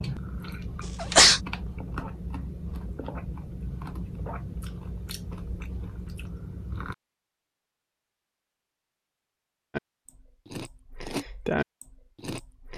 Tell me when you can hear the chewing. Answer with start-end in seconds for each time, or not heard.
0.0-7.0, 9.7-12.7.